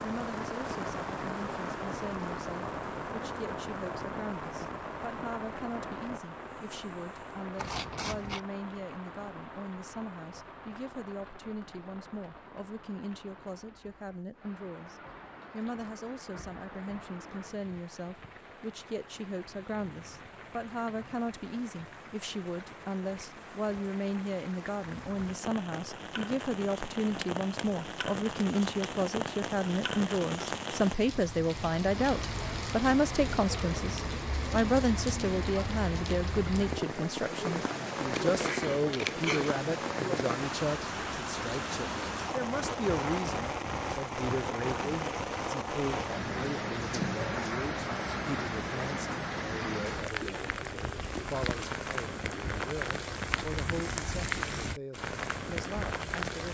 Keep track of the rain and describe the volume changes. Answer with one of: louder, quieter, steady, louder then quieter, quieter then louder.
quieter then louder.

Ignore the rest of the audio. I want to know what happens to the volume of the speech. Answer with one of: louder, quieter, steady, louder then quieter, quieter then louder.
louder then quieter.